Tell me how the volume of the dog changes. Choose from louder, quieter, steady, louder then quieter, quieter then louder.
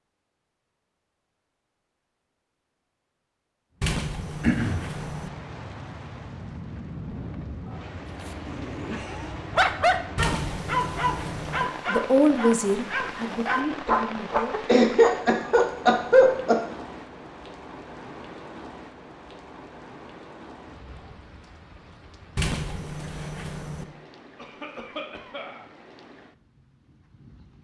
quieter then louder.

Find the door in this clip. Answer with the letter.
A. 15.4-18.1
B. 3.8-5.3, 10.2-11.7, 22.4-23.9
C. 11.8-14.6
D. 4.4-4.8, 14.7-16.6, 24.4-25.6
B.